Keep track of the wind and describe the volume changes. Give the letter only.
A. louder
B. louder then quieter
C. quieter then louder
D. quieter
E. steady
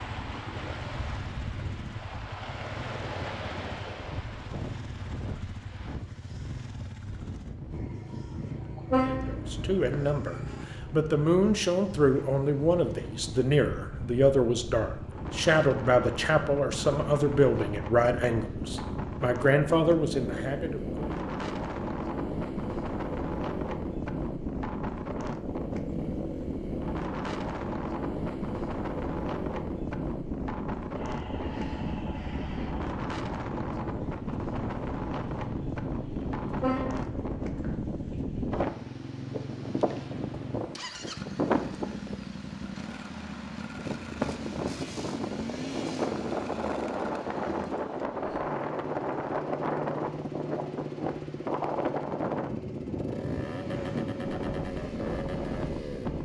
A.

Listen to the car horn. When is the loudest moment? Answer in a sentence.
The loudest moment of the car horn is at 9 seconds.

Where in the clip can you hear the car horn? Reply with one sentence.
You can hear the car horn from 8.9 to 10.1 s and from 36.6 to 37.8 s.